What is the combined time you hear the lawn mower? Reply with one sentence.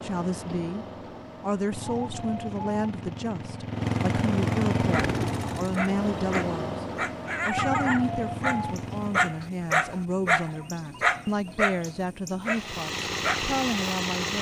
You can hear the lawn mower for 11 seconds altogether.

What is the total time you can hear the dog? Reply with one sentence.
The dog can be heard for 9 seconds in total.